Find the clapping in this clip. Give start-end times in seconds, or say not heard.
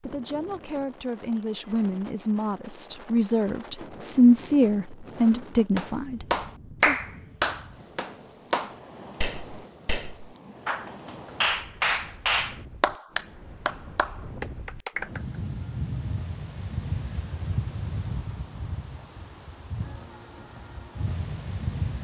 5.8-15.3.